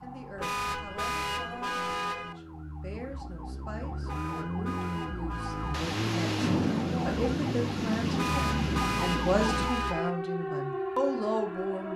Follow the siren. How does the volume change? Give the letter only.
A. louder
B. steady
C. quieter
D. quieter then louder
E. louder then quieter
A.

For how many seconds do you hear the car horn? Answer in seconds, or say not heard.
6 s.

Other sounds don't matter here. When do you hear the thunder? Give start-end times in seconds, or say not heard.
5.7-9.7.